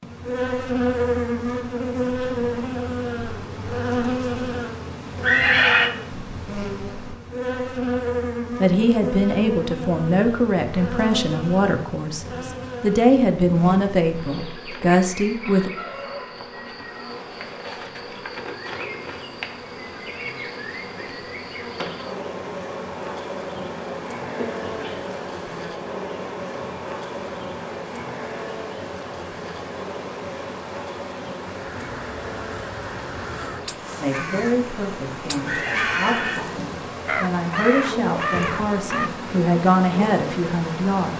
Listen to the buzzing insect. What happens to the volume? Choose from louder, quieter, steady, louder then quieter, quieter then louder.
quieter.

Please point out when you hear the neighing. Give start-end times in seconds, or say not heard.
5.2-5.9, 24.4-25.1, 35.5-36.4.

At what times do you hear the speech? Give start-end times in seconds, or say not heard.
8.6-15.7, 34.0-41.1.